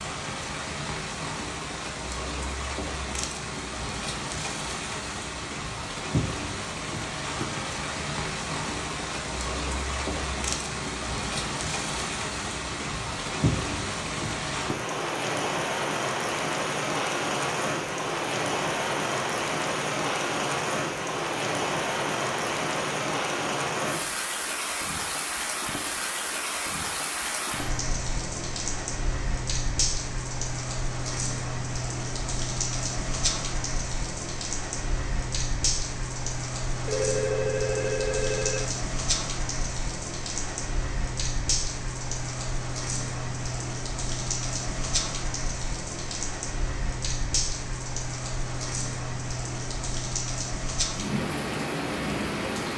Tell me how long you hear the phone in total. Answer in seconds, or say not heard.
2 s.